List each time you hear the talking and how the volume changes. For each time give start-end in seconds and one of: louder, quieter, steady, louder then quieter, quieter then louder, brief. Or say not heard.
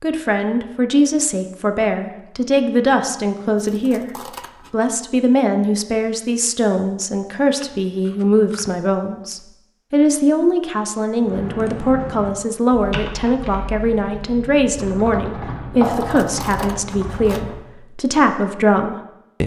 0.0-19.4 steady.